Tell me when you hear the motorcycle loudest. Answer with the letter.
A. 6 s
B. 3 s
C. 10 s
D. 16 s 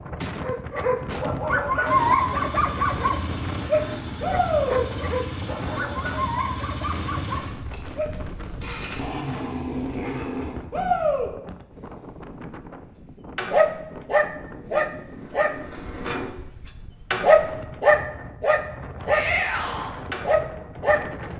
C.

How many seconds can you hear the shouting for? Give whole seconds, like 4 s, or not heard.
2 s.